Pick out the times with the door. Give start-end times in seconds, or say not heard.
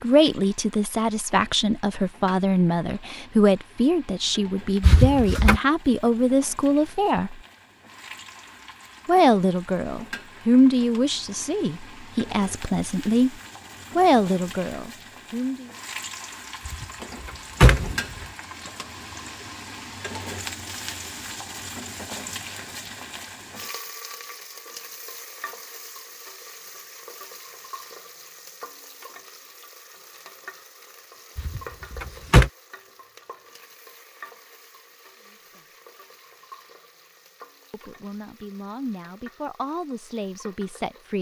4.8-5.6, 16.6-18.0, 31.4-32.5.